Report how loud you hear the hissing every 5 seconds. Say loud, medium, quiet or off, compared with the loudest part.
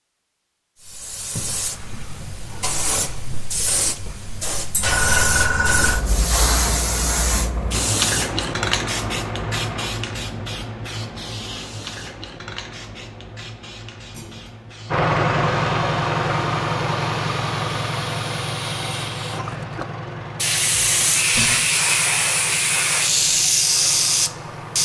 medium, loud, quiet, quiet, loud.